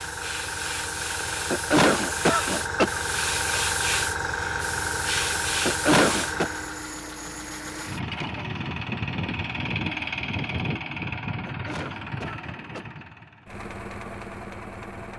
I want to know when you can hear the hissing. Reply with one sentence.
The hissing can be heard from 0.0 to 6.9 s.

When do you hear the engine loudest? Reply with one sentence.
The loudest moment of the engine is at 10 seconds.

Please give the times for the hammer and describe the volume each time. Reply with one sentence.
You can't hear the hammer here.